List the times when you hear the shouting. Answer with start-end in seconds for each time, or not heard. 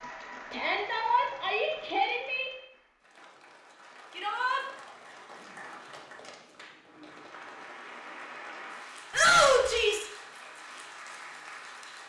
0.5-2.5, 4.1-4.6, 9.1-10.1.